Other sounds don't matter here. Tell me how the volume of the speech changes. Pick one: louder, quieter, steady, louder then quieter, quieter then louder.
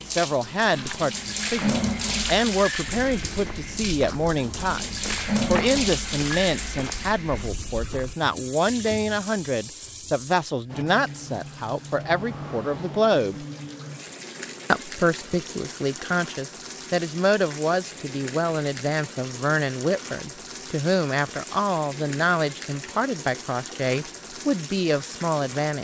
steady.